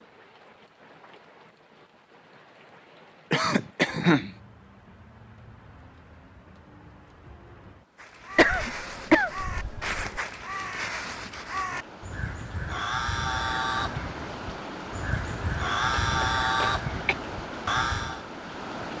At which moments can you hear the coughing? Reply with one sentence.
The coughing can be heard from 3.3 to 4.3 s, from 8.3 to 10.2 s and from 16.0 to 17.1 s.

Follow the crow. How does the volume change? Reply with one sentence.
The loudness of the crow goes up.